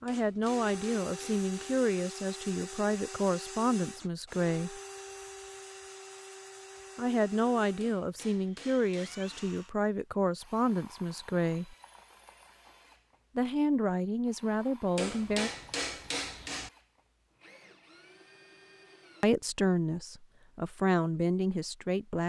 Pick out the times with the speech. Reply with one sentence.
You can hear the speech from 0.0 to 4.8 s, from 7.0 to 11.8 s, from 13.3 to 15.5 s and from 19.2 to 22.2 s.